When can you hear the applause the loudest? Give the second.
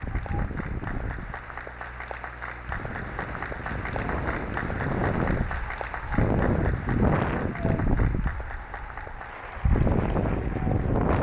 5 s.